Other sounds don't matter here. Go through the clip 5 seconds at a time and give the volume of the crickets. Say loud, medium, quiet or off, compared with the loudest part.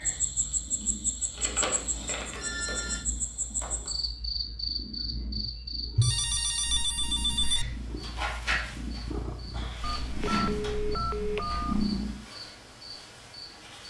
loud, loud, medium.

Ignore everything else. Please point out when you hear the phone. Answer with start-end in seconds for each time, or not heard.
1.6-3.0, 6.0-7.7, 9.8-11.9.